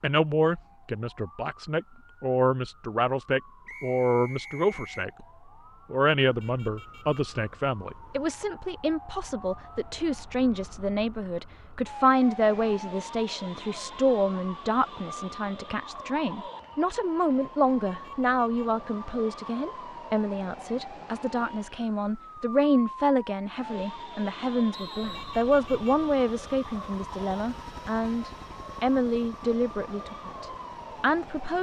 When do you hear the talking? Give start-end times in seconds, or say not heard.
0.0-5.2, 5.9-31.5.